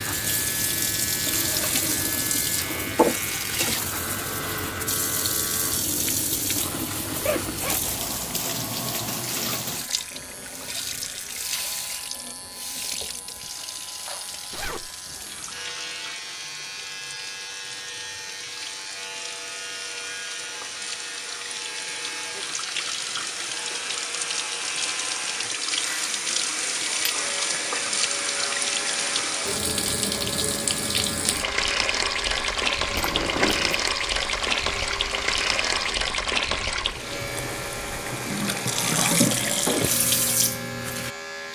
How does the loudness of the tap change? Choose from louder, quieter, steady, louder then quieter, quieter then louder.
quieter then louder.